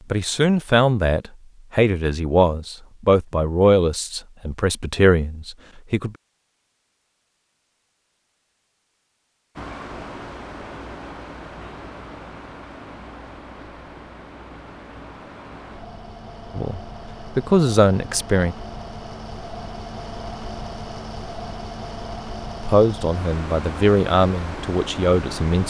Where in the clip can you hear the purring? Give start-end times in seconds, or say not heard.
not heard.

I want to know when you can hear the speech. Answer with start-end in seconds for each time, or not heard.
0.1-6.2, 16.6-18.6, 22.6-25.6.